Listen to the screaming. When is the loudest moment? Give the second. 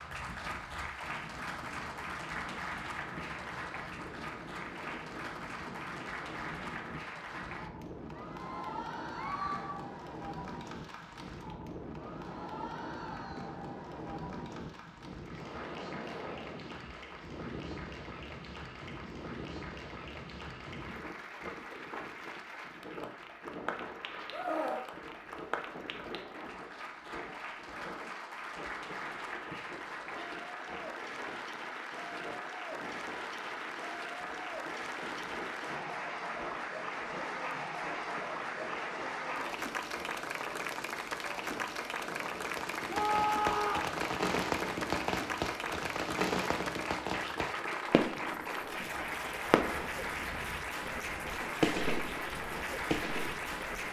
43 s.